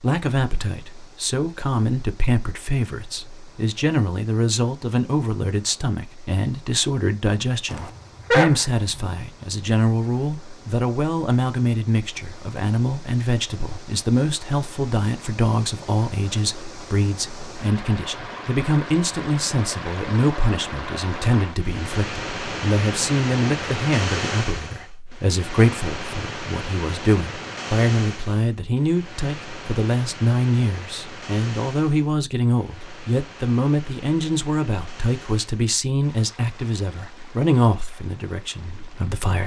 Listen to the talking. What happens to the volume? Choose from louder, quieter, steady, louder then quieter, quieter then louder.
steady.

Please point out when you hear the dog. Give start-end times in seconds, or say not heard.
7.7-9.1.